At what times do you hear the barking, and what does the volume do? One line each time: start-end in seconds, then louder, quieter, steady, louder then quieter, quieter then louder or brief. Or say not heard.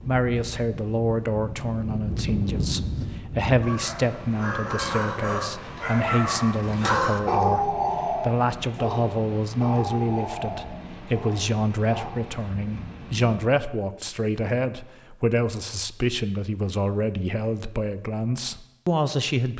3.6-12.1 louder then quieter.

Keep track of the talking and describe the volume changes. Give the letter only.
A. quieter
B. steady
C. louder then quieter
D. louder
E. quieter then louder
B.